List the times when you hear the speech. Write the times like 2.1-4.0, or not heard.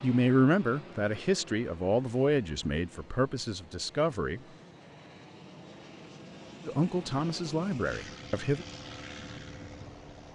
0.0-4.4, 6.7-8.7.